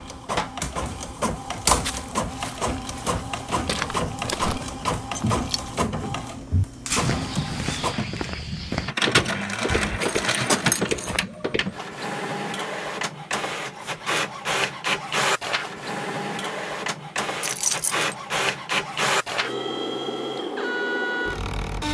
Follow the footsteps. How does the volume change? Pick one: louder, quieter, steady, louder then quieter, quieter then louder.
louder.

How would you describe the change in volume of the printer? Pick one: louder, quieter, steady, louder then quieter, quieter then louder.
steady.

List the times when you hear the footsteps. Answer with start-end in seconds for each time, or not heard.
1.8-11.7.